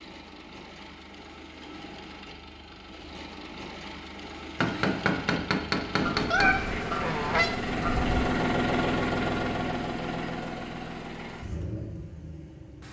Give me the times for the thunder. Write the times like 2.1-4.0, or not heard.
not heard.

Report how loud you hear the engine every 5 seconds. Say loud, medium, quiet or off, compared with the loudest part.
quiet, loud, medium.